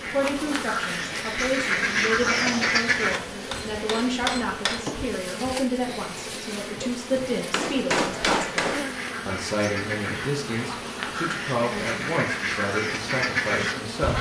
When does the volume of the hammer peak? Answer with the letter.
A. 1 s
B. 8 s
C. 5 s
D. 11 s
B.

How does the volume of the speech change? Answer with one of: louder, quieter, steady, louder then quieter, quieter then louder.
steady.